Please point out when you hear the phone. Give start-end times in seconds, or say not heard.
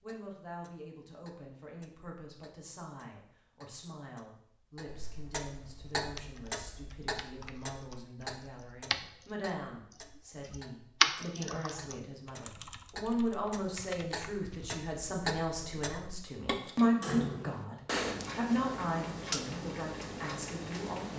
not heard.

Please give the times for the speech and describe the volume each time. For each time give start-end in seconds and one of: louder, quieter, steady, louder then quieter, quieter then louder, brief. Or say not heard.
0.0-21.1 louder.